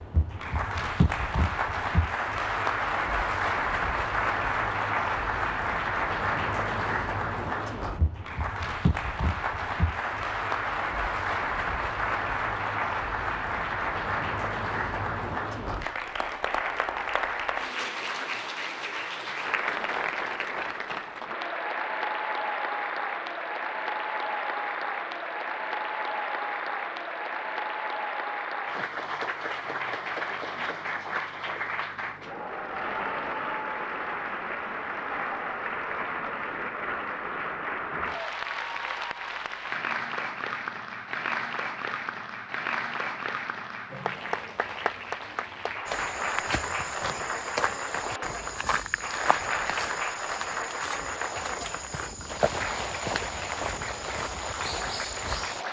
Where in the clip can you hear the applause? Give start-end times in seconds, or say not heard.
0.0-55.6.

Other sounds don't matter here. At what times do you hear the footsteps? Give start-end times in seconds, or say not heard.
45.9-55.6.